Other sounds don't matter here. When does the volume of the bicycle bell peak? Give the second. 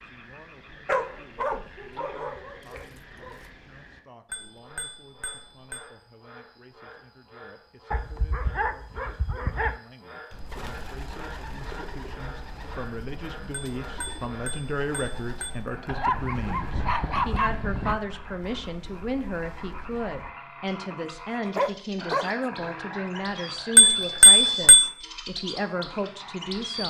24 s.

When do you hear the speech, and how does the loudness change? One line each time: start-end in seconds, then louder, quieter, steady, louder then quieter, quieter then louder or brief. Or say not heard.
0.0-26.8 louder.